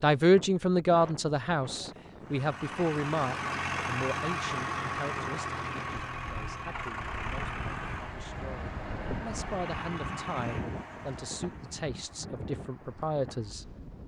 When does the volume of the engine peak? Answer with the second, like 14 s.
4 s.